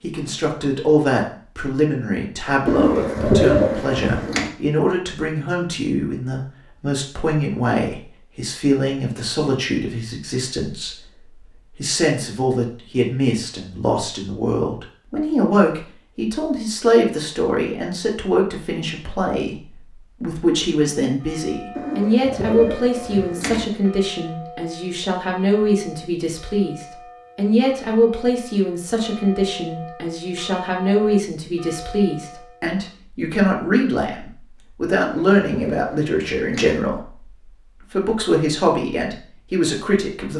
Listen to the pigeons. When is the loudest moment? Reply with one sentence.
The volume of the pigeons peaks at 3 seconds.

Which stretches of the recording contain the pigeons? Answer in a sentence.
The pigeons can be heard from 2.6 to 4.5 s, from 21.8 to 23.6 s and from 34.9 to 36.8 s.